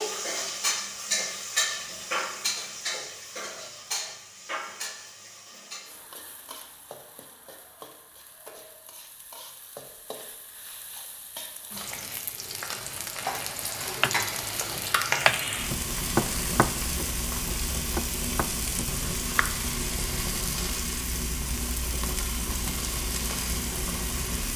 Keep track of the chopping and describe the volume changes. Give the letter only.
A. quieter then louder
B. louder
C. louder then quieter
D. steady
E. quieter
E.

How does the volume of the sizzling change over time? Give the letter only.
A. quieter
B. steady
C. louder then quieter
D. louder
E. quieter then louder
E.